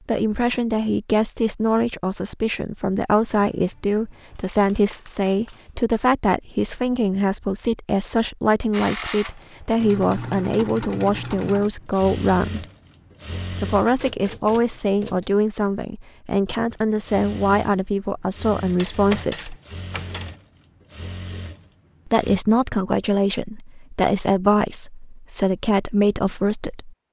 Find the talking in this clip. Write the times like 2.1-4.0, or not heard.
0.1-12.7, 13.6-19.6, 22.1-26.9.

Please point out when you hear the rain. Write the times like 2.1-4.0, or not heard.
not heard.